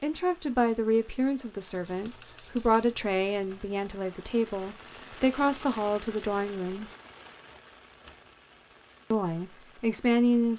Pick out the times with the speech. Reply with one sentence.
The speech can be heard from 0.0 to 6.9 s and from 9.1 to 10.5 s.